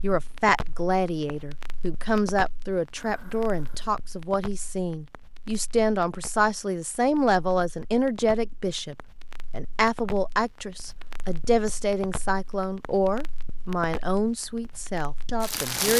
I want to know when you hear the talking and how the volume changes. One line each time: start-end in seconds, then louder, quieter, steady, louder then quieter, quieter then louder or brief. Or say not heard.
0.0-15.9 steady.